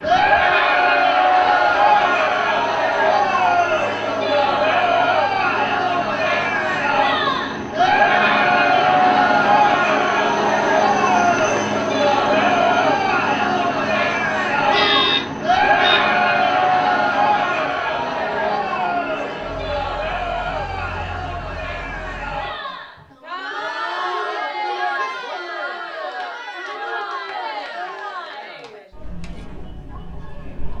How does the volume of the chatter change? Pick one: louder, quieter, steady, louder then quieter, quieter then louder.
quieter.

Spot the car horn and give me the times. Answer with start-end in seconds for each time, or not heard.
14.7-16.1.